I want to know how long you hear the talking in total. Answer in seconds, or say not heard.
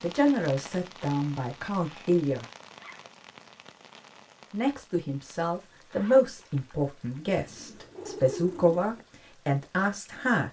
8 s.